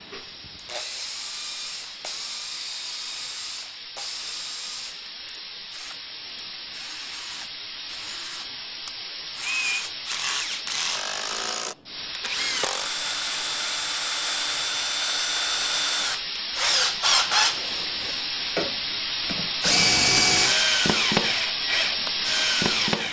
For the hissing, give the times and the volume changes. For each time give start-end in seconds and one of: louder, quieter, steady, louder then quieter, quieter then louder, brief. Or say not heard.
0.0-23.0 louder.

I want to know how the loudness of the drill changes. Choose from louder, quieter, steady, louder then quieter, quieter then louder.
quieter then louder.